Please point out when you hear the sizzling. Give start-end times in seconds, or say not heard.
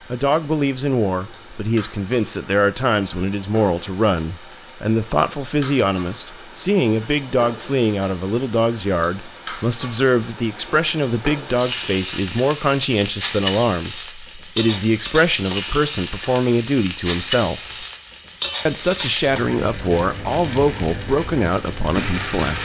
0.0-22.5.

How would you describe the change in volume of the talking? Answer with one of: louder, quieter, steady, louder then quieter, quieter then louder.
steady.